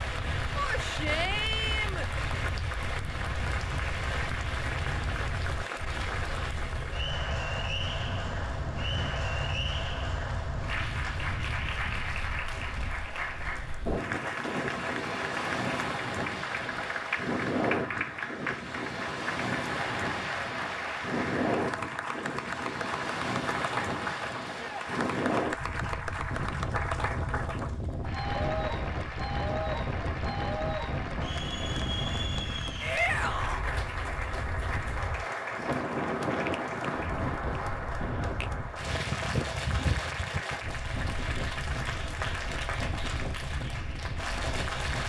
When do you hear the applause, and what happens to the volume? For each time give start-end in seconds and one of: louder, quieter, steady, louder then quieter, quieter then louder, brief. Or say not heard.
0.0-45.0 steady.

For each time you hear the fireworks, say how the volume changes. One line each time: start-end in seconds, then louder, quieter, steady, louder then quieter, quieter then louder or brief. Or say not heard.
not heard.